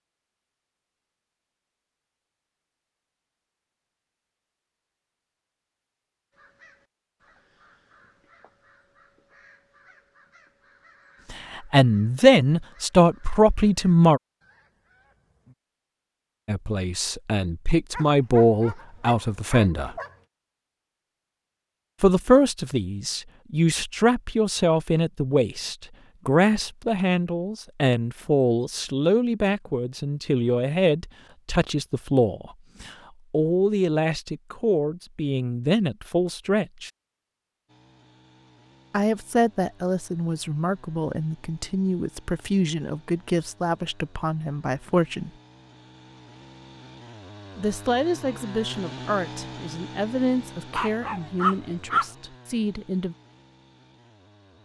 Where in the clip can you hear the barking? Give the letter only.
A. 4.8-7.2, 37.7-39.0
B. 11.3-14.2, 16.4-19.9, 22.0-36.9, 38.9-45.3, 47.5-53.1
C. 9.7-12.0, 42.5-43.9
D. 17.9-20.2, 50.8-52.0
D.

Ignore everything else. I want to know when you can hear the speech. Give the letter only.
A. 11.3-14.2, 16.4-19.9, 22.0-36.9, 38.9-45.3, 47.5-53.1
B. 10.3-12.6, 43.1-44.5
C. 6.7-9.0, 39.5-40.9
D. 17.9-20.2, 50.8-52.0
A.